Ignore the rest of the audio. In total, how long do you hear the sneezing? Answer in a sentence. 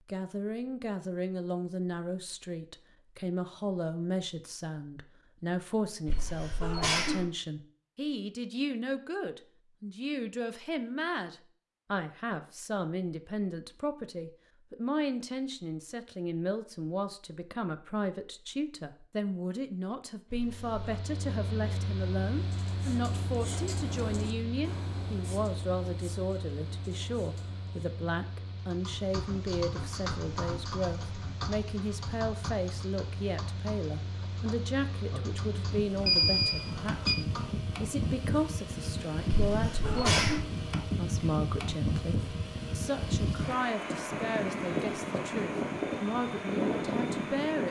You can hear the sneezing for 3 seconds altogether.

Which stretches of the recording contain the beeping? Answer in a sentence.
You can hear the beeping from 36.0 to 37.2 s.